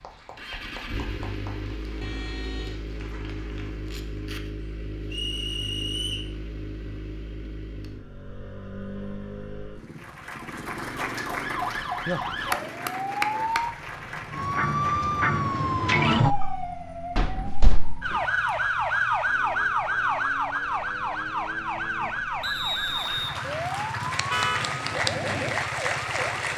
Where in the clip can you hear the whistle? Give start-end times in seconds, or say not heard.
5.1-6.3, 22.4-23.4.